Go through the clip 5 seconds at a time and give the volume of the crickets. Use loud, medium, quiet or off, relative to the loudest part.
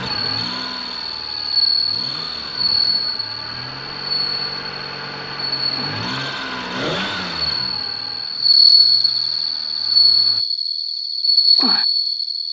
medium, loud, loud.